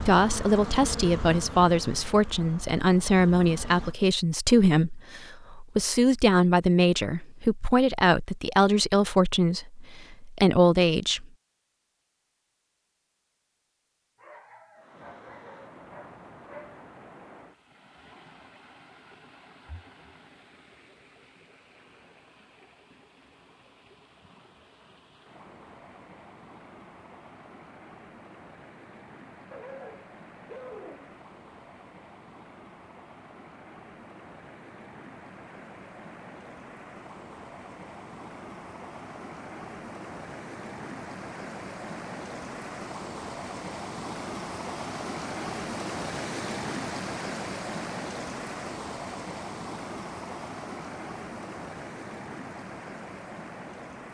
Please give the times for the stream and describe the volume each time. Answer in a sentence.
You can hear the stream from 14.8 to 54.0 s, getting louder.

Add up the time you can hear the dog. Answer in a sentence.
The dog can be heard for 4 seconds in total.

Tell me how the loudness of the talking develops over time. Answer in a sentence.
The volume of the talking stays about the same.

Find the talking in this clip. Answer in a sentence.
The talking can be heard from 0.0 to 11.2 s.